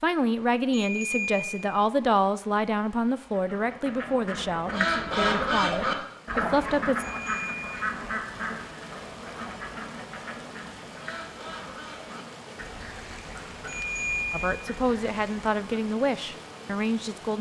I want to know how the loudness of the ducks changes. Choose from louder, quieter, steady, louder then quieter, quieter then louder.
quieter.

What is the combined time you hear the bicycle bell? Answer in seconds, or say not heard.
3 s.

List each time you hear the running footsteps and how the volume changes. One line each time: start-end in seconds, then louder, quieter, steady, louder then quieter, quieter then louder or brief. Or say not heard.
not heard.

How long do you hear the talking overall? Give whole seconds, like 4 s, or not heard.
10 s.